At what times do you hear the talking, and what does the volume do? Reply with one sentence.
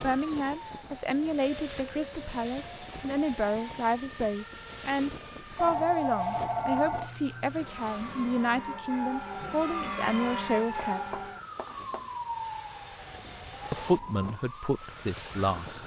You can hear the talking from 0.0 to 11.2 s, at a steady volume; and briefly from 13.7 to 15.8 s.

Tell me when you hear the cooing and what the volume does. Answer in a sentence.
You can't hear the cooing here.